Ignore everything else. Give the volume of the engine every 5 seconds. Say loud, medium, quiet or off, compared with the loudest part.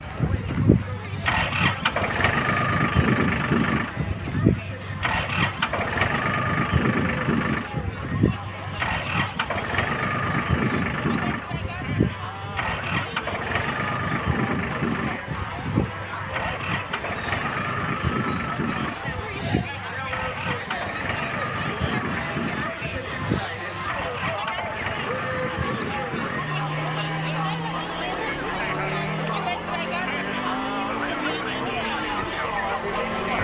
loud, loud, loud, medium, medium, medium, medium.